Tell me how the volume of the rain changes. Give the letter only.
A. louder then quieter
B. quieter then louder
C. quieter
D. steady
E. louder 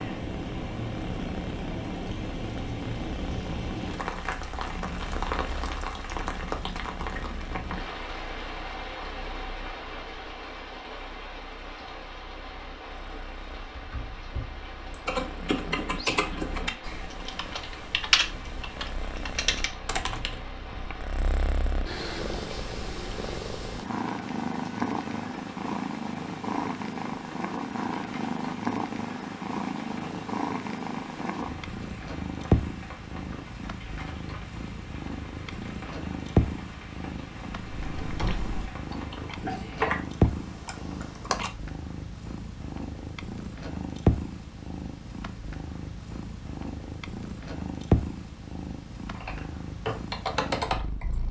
C.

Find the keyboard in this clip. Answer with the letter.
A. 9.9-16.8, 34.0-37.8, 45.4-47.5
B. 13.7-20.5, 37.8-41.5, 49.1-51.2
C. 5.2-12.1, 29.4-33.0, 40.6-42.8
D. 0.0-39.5
B.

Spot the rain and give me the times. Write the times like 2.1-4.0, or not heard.
0.0-39.5.